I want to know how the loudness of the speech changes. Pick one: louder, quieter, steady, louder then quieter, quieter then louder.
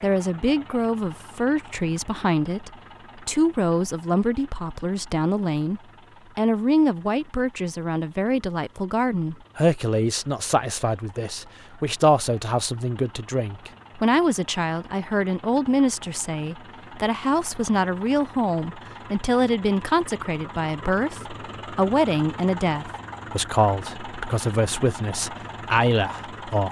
steady.